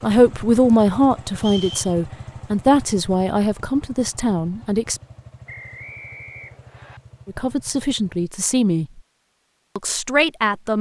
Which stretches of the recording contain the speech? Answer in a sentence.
The speech can be heard from 0.0 to 5.0 s, from 7.2 to 9.0 s and from 9.8 to 10.7 s.